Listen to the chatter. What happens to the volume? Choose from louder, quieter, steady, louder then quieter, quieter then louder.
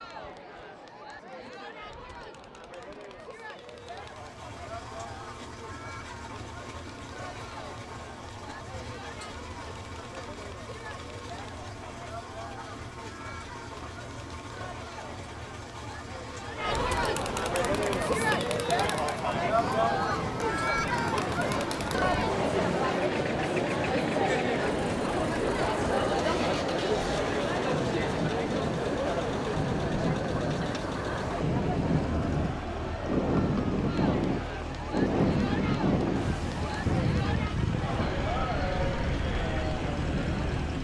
louder then quieter.